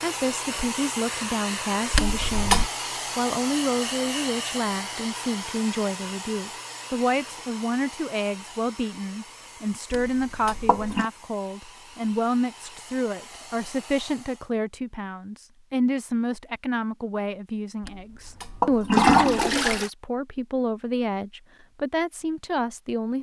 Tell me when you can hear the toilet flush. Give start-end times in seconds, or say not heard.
1.9-2.7, 9.9-11.1, 17.9-19.9.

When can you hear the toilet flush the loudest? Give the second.
19 s.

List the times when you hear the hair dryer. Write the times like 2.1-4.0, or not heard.
0.0-14.5.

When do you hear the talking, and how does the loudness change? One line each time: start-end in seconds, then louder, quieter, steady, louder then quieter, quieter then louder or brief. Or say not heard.
0.0-23.1 steady.